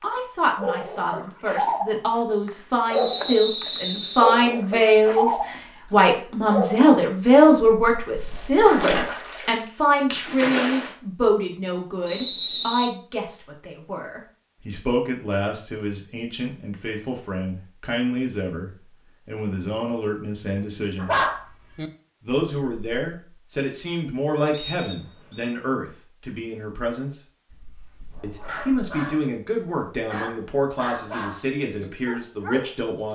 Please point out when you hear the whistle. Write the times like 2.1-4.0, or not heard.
2.9-4.4, 12.1-12.9, 24.5-25.5.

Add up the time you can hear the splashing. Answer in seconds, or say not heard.
2 s.